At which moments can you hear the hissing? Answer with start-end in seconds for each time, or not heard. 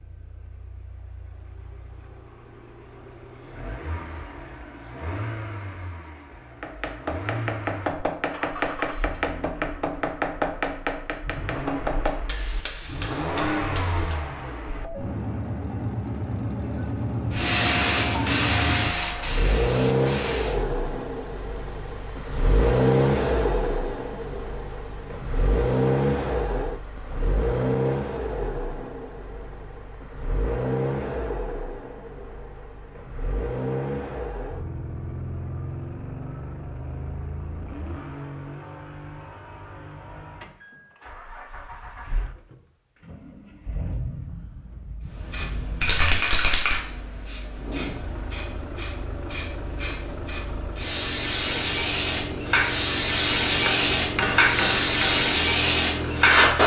17.3-20.6, 45.2-56.6.